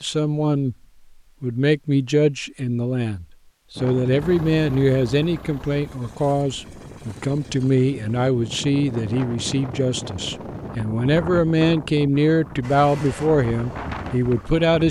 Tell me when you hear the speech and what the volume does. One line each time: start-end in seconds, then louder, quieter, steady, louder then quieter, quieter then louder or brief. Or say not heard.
0.0-0.8 brief
1.4-14.8 steady.